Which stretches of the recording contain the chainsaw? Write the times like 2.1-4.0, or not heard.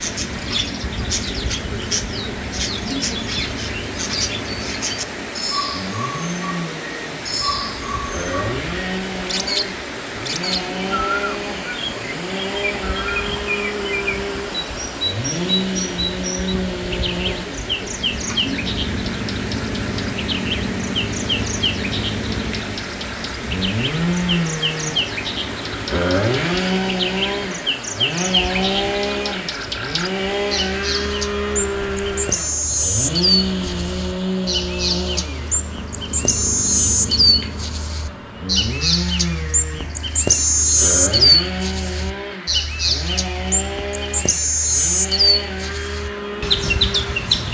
0.0-47.4.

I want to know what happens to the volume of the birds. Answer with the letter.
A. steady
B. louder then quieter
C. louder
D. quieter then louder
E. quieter
C.